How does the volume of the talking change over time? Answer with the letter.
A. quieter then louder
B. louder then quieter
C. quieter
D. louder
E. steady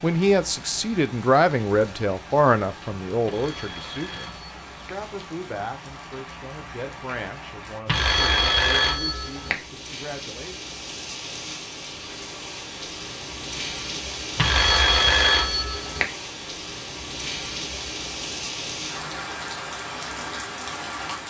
C.